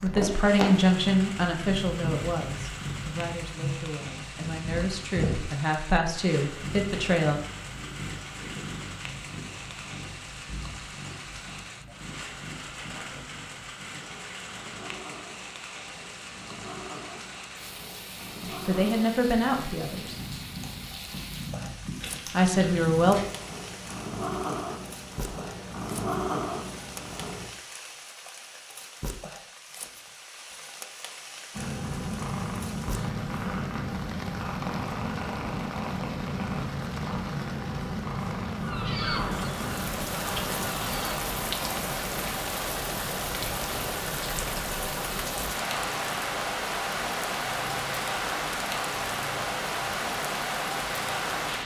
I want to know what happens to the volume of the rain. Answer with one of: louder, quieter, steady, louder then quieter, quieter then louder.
louder.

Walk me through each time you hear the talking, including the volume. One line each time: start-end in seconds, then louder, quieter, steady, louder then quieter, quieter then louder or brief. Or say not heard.
0.0-7.4 quieter then louder
18.4-20.1 brief
22.3-23.2 brief.